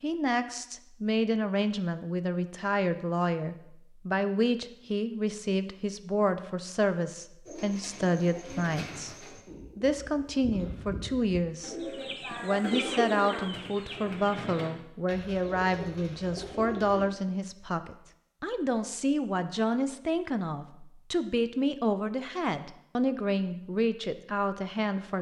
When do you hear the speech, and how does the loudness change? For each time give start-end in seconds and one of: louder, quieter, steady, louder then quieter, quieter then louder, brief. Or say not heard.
0.0-25.1 steady.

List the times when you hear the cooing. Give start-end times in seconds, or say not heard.
7.5-17.1.